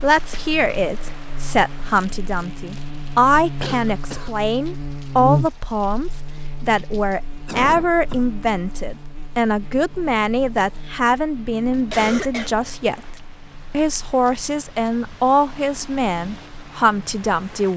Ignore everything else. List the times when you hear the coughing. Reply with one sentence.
You can hear the coughing from 3.6 to 4.3 s, from 7.5 to 8.3 s and from 11.8 to 12.5 s.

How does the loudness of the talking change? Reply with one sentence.
The volume of the talking stays about the same.